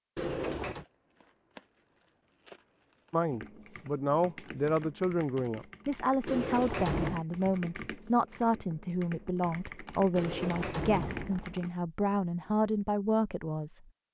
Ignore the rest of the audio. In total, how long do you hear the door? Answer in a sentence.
The door can be heard for 3 seconds in total.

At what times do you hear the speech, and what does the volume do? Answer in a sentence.
You can hear the speech from 3.1 to 13.8 s, at a steady volume.